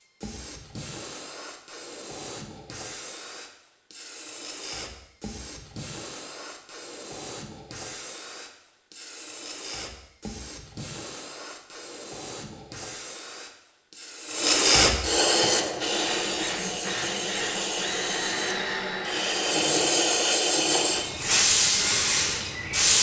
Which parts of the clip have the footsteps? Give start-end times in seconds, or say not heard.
not heard.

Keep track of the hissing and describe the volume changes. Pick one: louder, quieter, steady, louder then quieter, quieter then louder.
louder.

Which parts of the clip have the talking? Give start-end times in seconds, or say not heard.
not heard.